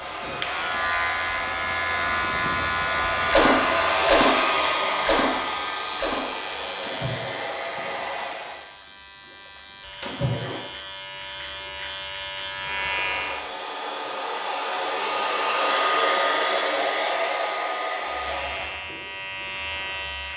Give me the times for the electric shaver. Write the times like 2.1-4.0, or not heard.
0.0-13.5, 18.0-20.3.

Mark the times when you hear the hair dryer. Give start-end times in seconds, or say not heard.
0.0-8.7, 12.7-18.9.